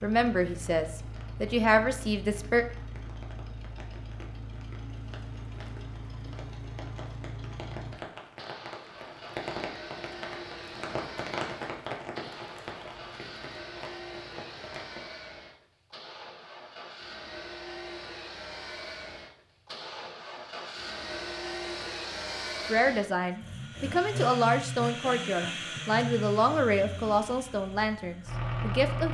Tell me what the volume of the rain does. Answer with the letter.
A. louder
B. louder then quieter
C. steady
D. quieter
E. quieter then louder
B.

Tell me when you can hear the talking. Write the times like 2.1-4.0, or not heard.
0.0-2.6, 22.6-29.0.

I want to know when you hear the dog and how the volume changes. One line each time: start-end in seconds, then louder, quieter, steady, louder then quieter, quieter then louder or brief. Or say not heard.
not heard.